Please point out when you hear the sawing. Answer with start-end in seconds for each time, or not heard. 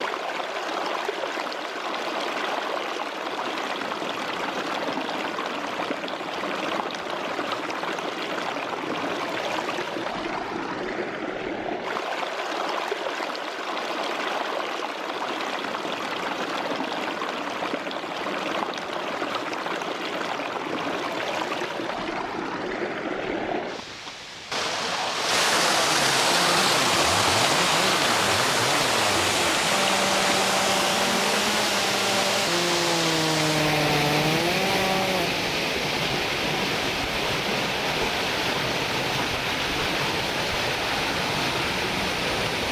26.2-35.3.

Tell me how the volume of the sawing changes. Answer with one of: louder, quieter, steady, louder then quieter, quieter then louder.
louder.